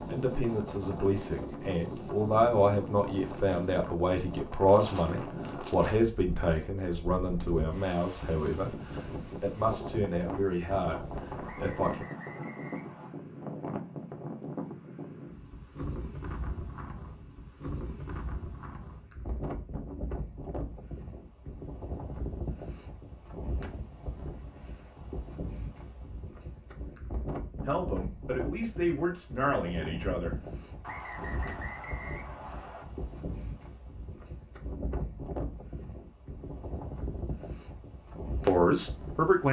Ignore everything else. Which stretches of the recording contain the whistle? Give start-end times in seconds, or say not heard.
11.4-13.2, 30.8-32.9.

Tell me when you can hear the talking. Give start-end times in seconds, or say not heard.
0.1-12.1, 27.6-30.4, 38.5-39.4.